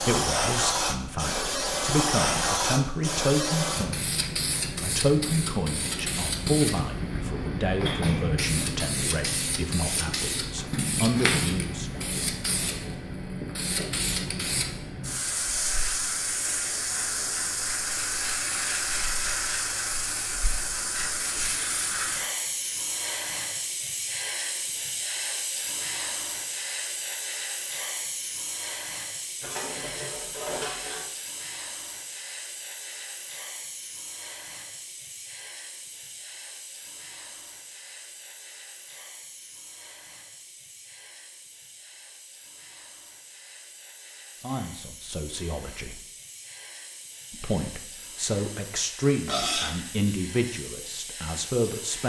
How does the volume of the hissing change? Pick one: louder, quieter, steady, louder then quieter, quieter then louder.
quieter.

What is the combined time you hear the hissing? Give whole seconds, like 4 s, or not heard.
52 s.